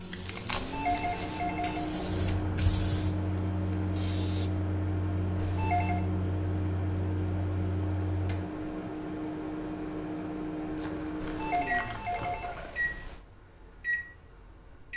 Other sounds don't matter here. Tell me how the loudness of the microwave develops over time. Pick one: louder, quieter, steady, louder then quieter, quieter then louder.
steady.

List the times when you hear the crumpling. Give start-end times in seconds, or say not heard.
0.1-1.5, 10.8-12.8.